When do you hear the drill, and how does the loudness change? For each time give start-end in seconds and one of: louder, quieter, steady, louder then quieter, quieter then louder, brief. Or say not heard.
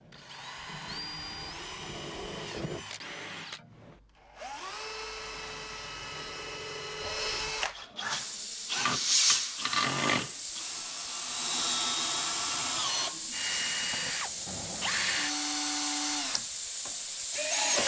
0.0-17.8 louder.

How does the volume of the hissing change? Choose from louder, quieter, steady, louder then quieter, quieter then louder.
quieter.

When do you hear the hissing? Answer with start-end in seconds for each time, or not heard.
8.1-17.6.